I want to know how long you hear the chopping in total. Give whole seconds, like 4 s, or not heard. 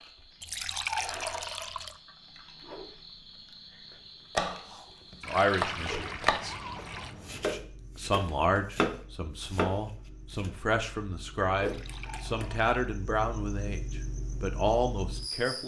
6 s.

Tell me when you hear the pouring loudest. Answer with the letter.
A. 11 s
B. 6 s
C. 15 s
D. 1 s
D.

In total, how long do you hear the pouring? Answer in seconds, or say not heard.
5 s.